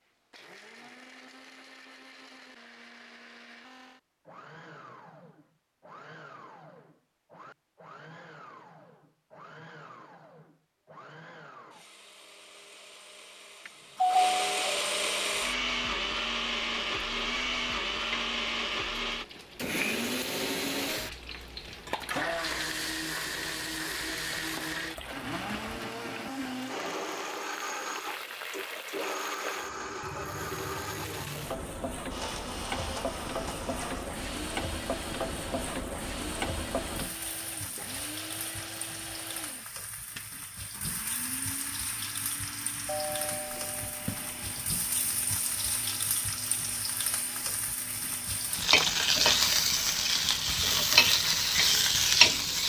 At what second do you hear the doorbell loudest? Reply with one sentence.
The volume of the doorbell peaks at 14 seconds.